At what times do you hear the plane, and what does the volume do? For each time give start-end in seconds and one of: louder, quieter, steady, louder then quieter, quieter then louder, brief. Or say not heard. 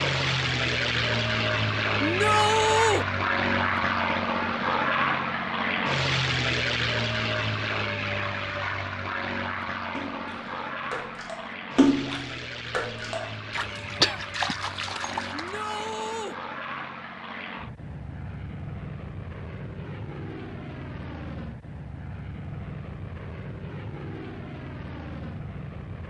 0.0-26.0 quieter.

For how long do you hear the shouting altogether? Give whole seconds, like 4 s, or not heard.
2 s.